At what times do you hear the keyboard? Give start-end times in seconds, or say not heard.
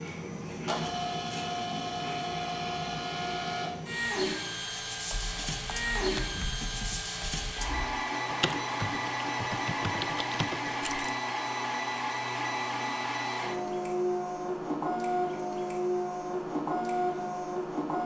5.0-11.1.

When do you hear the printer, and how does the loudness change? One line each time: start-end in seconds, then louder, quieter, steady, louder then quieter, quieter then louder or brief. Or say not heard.
0.0-18.0 steady.